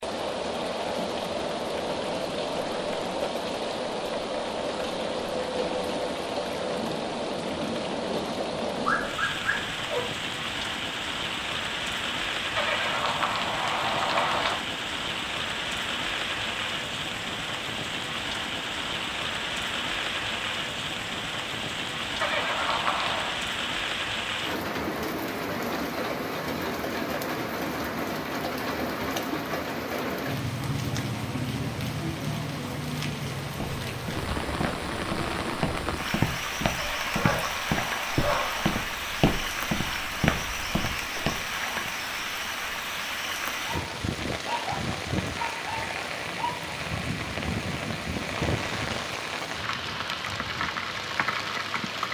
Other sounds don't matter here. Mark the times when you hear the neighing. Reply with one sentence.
You can hear the neighing from 12.6 to 14.6 s, from 22.2 to 23.4 s and from 36.8 to 38.8 s.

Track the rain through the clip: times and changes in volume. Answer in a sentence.
You can hear the rain from 0.0 to 52.0 s, at a steady volume.